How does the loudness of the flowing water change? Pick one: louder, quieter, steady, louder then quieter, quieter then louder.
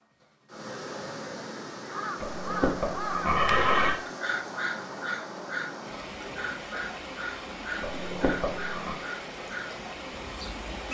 steady.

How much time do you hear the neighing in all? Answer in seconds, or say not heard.
3 s.